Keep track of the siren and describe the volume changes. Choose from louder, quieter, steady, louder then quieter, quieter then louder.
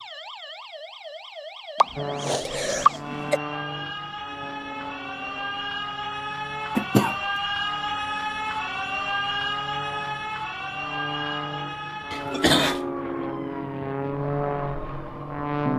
louder then quieter.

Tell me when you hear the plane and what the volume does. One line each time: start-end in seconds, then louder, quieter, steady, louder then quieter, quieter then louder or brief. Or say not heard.
1.9-15.7 quieter then louder.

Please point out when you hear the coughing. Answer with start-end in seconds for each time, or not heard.
1.8-3.4, 6.8-7.2, 12.1-12.8.